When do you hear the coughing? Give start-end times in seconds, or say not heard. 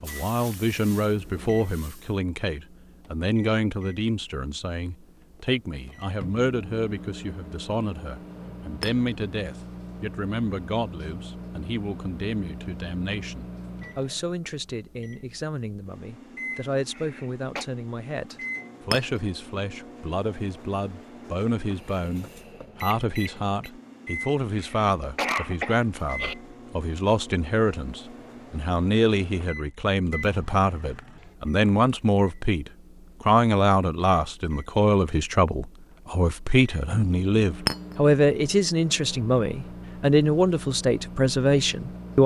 16.9-17.6, 24.6-26.4.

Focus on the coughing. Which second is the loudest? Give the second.
25 s.